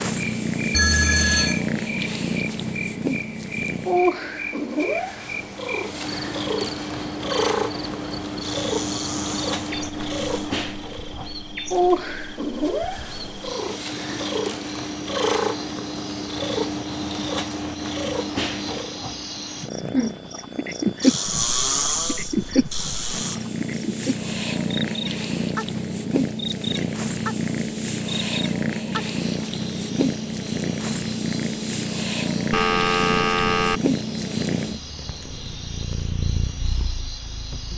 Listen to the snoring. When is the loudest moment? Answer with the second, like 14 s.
22 s.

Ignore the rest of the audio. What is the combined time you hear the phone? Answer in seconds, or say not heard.
2 s.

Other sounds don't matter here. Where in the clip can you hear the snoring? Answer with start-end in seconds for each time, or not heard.
8.4-10.6, 21.0-23.4.